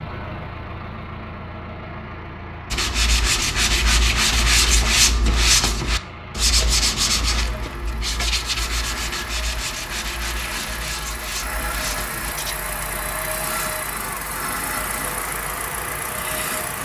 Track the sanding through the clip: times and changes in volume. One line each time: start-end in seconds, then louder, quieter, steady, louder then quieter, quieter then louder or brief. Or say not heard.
2.7-12.6 quieter.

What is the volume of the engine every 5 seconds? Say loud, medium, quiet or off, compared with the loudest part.
medium, medium, loud, loud.